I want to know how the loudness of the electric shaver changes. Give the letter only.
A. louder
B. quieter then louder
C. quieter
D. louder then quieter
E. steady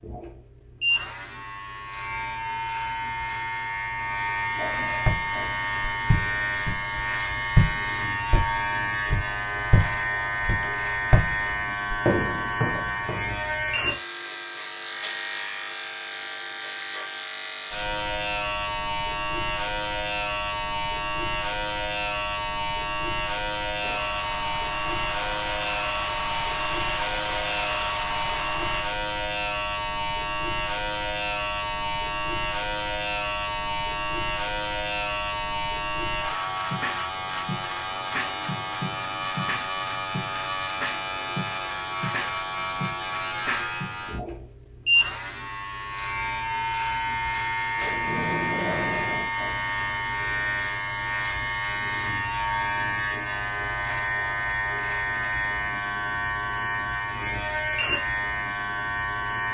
E.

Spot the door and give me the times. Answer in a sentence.
You can hear the door from 47.8 to 49.3 s.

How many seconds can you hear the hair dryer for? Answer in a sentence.
The hair dryer can be heard for 5 seconds in total.